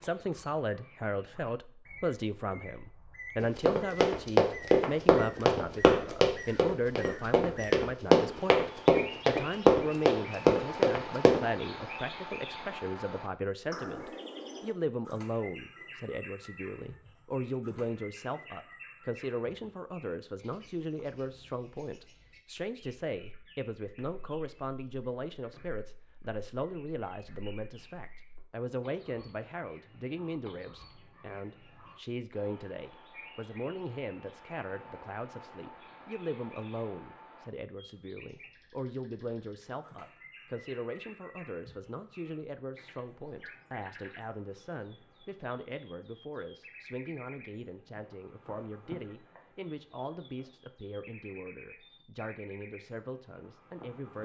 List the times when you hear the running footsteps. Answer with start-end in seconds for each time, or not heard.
3.4-11.4.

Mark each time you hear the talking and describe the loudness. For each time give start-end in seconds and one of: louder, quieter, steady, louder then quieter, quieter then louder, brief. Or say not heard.
0.0-54.2 quieter.